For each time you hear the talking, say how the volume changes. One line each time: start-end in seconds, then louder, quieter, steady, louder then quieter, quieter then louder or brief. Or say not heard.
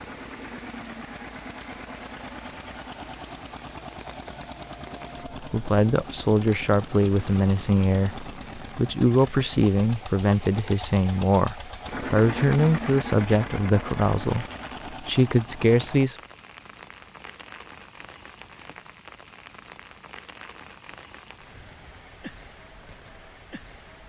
5.4-16.1 steady.